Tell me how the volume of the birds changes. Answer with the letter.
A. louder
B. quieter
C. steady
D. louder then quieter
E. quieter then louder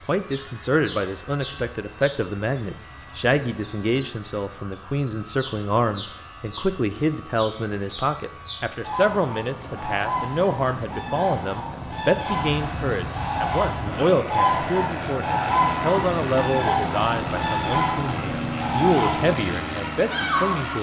A.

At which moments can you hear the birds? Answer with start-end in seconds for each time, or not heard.
0.0-20.7.